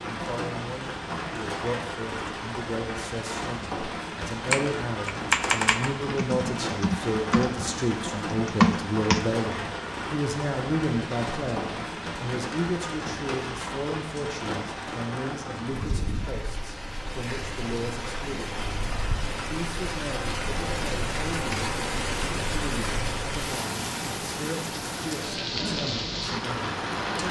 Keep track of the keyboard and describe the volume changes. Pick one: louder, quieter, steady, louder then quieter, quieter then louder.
quieter then louder.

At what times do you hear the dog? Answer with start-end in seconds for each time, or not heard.
not heard.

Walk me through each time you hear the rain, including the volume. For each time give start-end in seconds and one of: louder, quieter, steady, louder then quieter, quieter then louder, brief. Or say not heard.
0.0-27.2 steady.